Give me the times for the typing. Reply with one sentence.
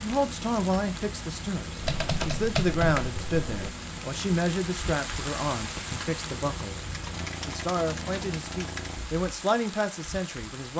You can hear the typing from 1.8 to 3.7 s and from 6.9 to 9.0 s.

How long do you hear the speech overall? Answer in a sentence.
You can hear the speech for 10 seconds altogether.